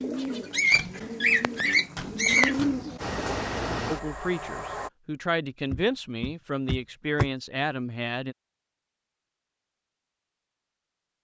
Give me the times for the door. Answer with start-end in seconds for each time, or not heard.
0.7-2.7, 5.7-7.3.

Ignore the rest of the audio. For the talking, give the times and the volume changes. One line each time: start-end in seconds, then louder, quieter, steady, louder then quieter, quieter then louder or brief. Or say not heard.
3.9-8.3 steady.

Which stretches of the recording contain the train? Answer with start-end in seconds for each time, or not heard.
3.0-4.9.